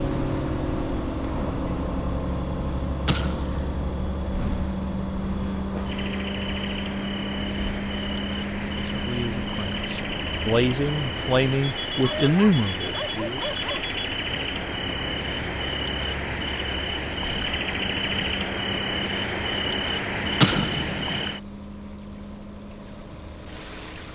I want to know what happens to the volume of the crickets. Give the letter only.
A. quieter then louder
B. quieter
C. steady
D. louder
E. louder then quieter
D.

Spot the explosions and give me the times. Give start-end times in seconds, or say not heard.
3.0-3.8, 20.4-21.2.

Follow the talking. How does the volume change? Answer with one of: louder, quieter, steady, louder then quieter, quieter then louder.
louder.